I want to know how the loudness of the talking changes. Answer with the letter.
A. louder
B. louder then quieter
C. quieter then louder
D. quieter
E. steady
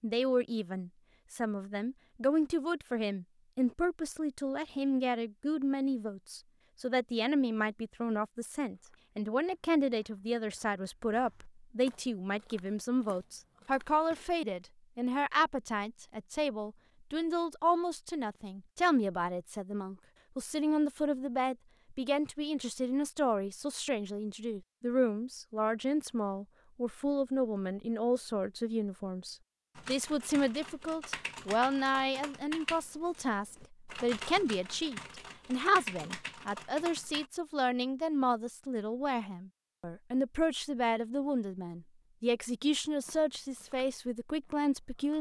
E.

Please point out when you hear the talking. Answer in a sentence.
You can hear the talking from 0.0 to 45.1 s.